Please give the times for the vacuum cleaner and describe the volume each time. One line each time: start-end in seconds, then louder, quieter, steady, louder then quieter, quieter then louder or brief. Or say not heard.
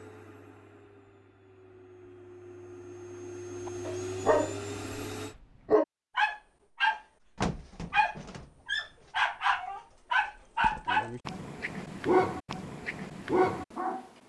0.0-5.3 louder.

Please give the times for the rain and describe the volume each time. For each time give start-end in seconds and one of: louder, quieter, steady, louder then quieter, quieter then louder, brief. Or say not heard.
not heard.